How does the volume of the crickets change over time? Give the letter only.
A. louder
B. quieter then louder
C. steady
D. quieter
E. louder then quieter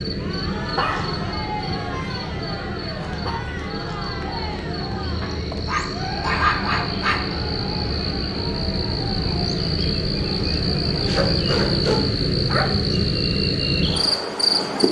A.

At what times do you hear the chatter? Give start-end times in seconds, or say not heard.
0.1-11.2.